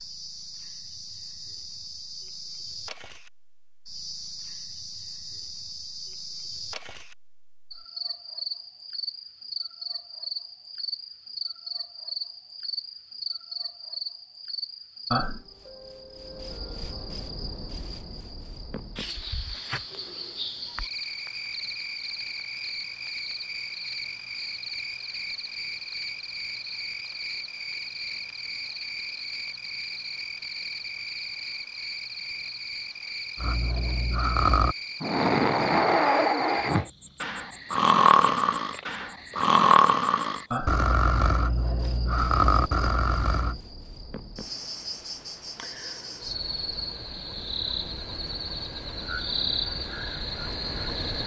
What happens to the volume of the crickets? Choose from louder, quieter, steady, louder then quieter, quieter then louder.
steady.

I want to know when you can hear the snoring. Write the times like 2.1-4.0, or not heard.
33.4-43.6.